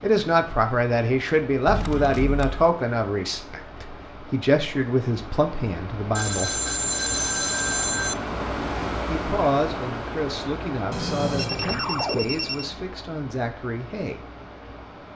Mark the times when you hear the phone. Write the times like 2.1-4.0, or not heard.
1.6-2.8, 6.2-8.2, 10.9-12.7.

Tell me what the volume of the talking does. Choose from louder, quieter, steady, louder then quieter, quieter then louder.
quieter.